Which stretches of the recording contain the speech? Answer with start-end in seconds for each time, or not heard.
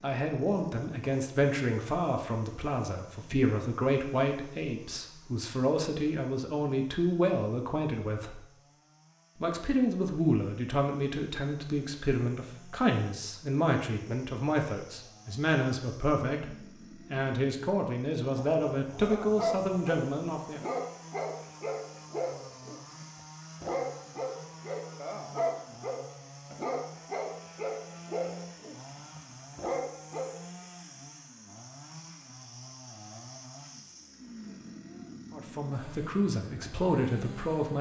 0.0-8.4, 9.3-20.6, 35.3-37.7.